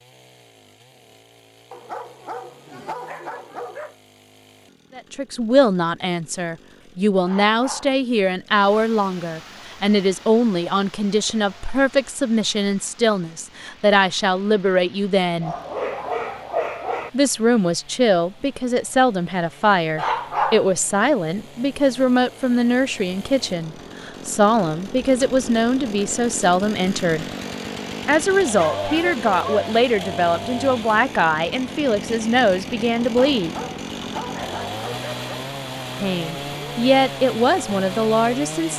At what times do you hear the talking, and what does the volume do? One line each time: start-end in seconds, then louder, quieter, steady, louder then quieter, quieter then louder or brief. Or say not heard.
5.0-15.6 steady
17.1-27.2 steady
28.1-33.5 steady
36.0-38.7 brief.